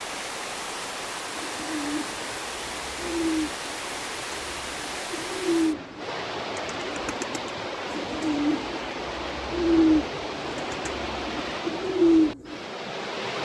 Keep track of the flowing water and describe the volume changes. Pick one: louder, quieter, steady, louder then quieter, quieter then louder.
steady.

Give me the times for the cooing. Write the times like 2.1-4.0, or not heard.
1.4-12.7.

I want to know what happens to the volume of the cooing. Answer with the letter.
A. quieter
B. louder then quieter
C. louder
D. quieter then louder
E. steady
D.